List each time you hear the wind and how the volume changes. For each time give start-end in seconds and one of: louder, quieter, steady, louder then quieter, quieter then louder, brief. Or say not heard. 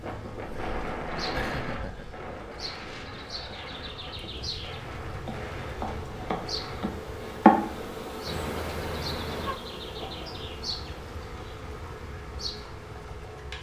0.0-6.8 quieter.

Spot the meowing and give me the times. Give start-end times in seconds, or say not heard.
8.2-9.6.